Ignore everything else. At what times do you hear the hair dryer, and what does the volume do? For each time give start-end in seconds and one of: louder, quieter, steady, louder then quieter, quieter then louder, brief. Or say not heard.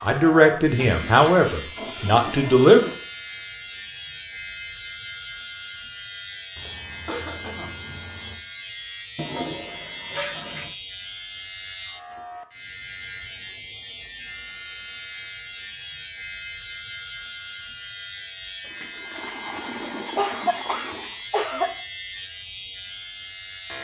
not heard.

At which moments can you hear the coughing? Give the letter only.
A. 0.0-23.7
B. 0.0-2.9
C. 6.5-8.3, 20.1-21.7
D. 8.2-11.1
C.